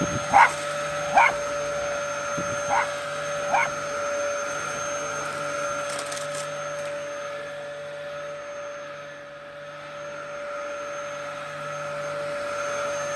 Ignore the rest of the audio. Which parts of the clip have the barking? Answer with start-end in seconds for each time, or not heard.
0.0-3.7.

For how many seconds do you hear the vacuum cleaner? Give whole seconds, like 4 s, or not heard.
13 s.